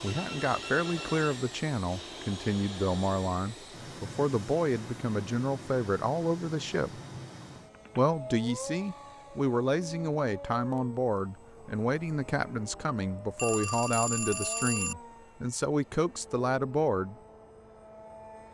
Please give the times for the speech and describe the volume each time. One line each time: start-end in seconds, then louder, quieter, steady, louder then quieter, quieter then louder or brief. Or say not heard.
0.0-7.0 steady
8.0-17.1 steady.